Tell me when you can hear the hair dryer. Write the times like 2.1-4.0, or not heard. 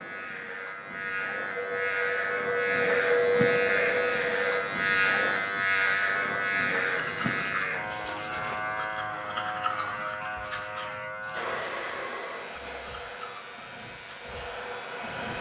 1.6-4.7, 11.3-15.3.